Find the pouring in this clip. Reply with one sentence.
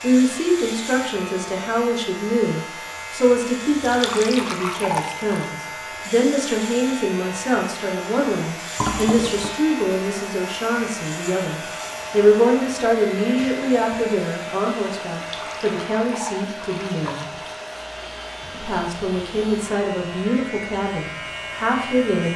The pouring can be heard from 3.9 to 5.5 s, from 8.8 to 9.6 s and from 15.1 to 17.4 s.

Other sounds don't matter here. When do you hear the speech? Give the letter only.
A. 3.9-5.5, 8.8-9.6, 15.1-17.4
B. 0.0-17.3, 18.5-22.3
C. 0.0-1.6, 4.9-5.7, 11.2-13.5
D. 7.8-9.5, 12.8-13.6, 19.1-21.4
B.